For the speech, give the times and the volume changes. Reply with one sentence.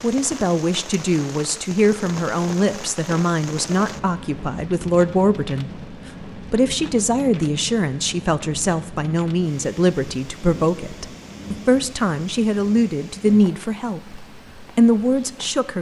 You can hear the speech from 0.0 to 15.7 s, at a steady volume.